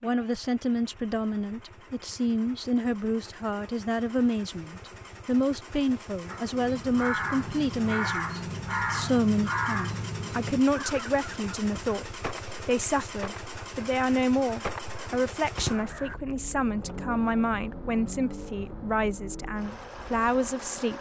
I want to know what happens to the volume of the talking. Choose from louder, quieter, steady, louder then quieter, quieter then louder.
steady.